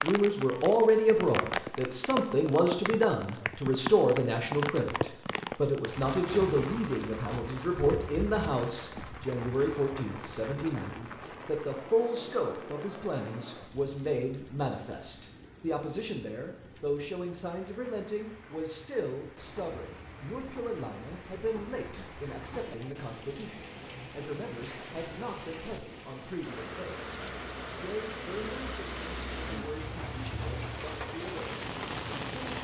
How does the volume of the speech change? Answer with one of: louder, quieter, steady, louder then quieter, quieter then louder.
quieter.